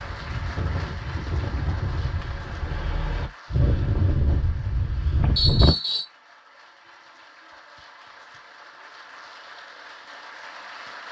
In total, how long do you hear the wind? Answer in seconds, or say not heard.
6 s.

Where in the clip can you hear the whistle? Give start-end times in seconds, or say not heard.
5.3-6.0.